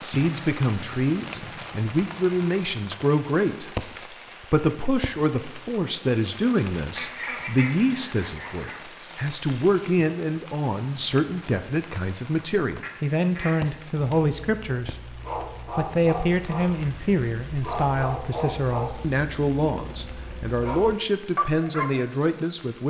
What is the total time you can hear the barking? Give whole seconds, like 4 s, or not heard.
8 s.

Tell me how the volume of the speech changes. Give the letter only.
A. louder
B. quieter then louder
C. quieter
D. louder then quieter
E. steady
E.